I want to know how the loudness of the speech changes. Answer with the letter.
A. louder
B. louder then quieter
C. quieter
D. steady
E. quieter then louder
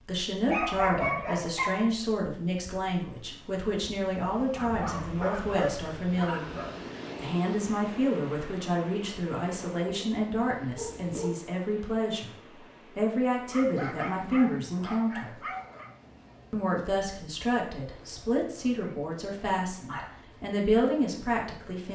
D.